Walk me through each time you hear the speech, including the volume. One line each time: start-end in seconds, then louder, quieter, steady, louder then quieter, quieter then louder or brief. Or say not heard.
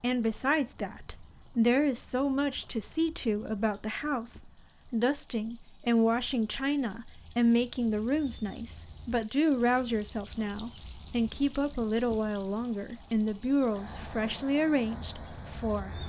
0.0-16.0 steady.